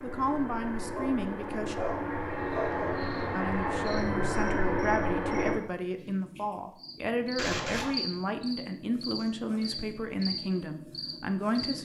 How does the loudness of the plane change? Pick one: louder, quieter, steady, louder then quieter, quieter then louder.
louder.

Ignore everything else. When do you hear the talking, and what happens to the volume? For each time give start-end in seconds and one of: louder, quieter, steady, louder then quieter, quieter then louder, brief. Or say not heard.
0.0-1.8 brief
3.3-11.7 steady.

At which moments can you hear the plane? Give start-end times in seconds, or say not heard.
0.0-5.6.